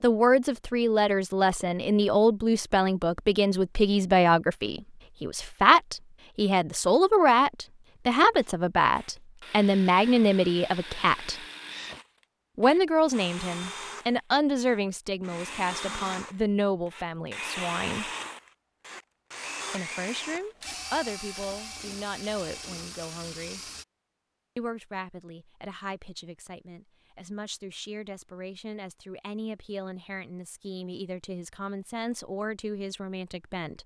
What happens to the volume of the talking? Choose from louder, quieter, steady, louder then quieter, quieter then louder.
quieter.